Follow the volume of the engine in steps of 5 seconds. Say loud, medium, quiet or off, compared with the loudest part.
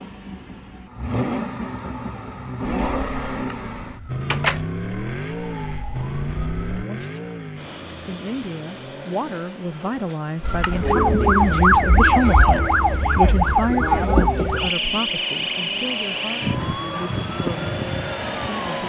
loud, loud, quiet, loud.